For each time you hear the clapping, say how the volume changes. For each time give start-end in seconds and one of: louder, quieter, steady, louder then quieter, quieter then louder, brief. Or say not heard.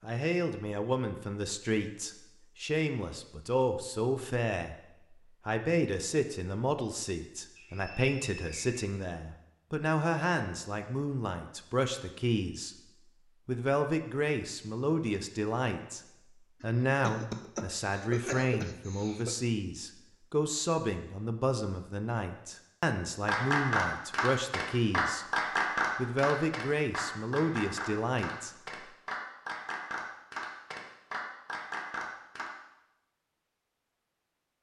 23.2-32.5 quieter.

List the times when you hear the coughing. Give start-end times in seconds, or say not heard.
16.6-19.4.